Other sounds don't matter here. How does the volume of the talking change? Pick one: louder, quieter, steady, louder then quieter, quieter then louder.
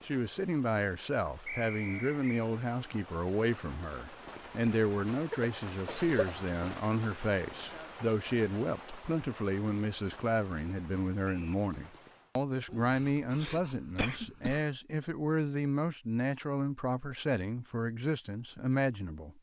steady.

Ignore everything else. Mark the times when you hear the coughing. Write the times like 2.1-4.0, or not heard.
5.3-6.3, 12.7-14.7.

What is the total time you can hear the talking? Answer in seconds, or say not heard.
19 s.